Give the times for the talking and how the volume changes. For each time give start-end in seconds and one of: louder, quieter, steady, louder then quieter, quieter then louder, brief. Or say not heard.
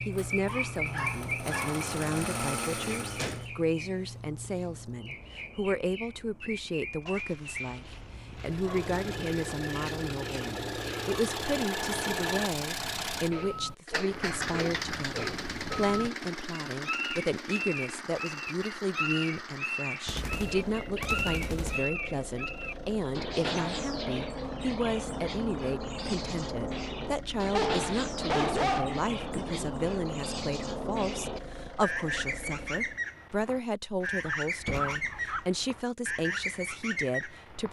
0.1-37.6 steady.